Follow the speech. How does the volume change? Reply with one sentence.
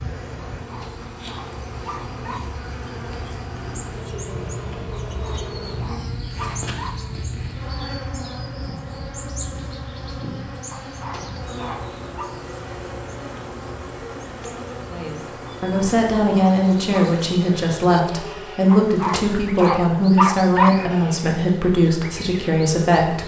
The loudness of the speech stays about the same.